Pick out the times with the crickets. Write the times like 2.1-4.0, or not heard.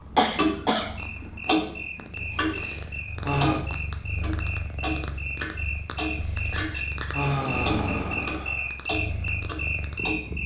0.0-10.4.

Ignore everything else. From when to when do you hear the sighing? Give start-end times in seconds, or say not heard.
2.4-3.6, 6.3-8.7.